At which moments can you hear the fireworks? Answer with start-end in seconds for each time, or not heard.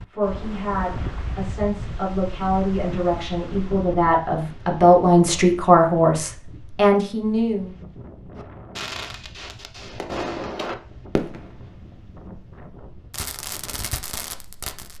8.3-11.7, 13.1-14.9.